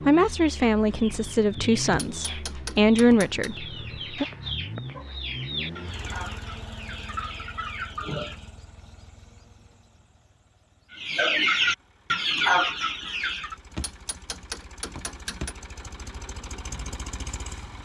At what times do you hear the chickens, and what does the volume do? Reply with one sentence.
You can hear the chickens from 0.0 to 8.4 s, getting louder; and briefly from 10.9 to 13.6 s.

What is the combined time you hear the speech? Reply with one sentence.
The speech can be heard for 4 seconds in total.